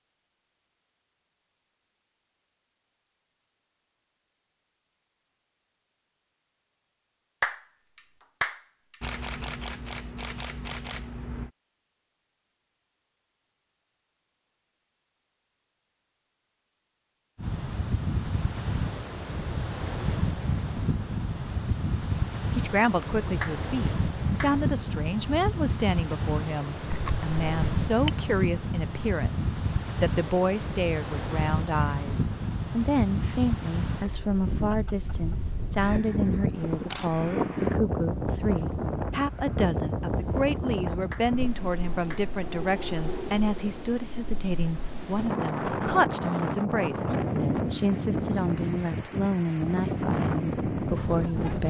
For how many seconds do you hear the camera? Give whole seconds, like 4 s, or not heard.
5 s.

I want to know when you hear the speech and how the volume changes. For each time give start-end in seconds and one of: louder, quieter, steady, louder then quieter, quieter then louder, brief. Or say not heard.
22.6-51.6 steady.